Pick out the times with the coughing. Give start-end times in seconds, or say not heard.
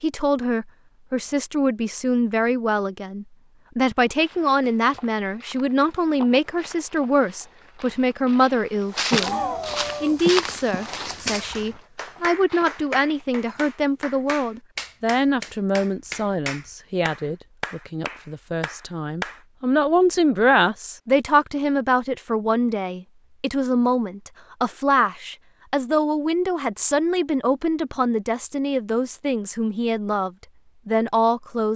9.1-11.8.